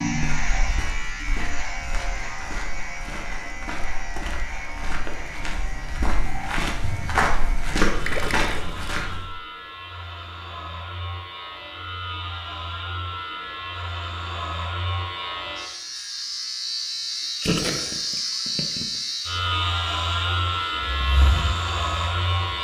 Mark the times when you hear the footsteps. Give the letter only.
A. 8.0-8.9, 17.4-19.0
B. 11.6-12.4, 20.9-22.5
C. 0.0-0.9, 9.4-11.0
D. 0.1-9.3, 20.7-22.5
D.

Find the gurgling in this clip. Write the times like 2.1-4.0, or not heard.
8.0-8.9, 17.4-19.0.